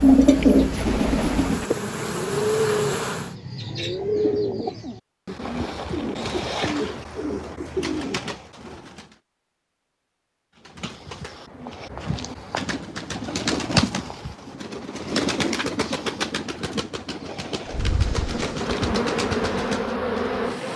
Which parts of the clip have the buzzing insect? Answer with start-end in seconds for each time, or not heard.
0.0-3.4, 17.6-20.7.